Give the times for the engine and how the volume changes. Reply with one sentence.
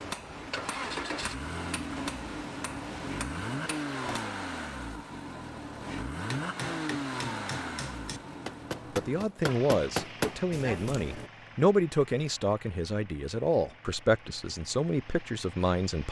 The engine can be heard from 0.0 to 16.0 s, getting quieter.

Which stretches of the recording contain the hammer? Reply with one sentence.
You can hear the hammer from 0.0 to 4.2 s and from 6.3 to 11.3 s.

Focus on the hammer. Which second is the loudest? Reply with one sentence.
The loudest moment of the hammer is at 10 seconds.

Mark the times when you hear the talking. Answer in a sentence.
You can hear the talking from 8.9 to 16.0 s.